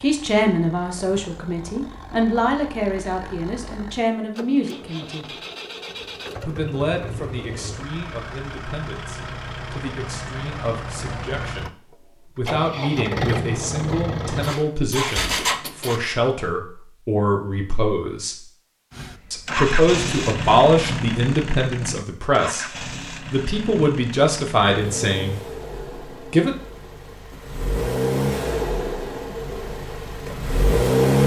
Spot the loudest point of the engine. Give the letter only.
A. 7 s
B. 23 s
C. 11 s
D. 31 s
D.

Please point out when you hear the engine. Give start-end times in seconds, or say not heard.
0.0-16.0, 18.9-31.2.